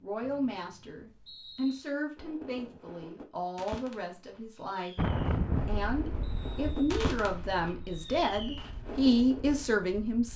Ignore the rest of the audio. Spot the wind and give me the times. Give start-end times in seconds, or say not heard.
5.0-10.3.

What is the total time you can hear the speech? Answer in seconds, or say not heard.
10 s.